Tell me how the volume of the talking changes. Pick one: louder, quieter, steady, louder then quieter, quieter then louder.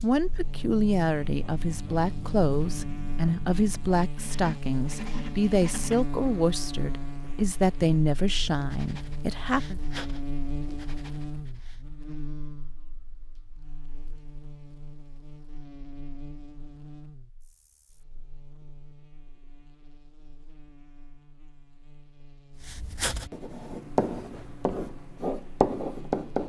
steady.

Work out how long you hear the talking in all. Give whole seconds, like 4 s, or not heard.
10 s.